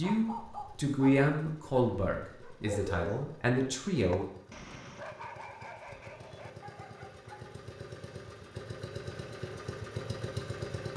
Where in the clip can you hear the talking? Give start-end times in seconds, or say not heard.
0.0-4.2.